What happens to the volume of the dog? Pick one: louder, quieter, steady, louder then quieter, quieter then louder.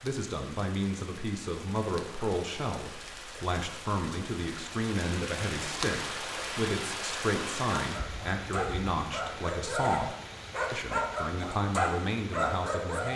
louder.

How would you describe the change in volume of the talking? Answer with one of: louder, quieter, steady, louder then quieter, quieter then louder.
steady.